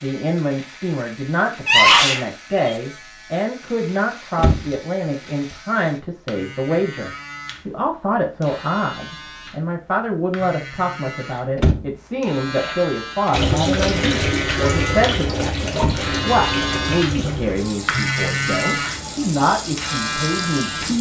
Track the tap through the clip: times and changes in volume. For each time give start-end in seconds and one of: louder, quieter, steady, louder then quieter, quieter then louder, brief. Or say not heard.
13.3-20.9 quieter.